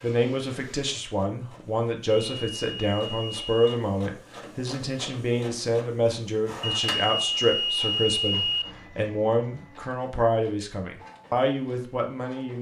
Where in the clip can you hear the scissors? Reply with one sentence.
The scissors can't be heard in this clip.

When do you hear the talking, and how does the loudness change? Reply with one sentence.
You can hear the talking from 0.0 to 12.5 s, at a steady volume.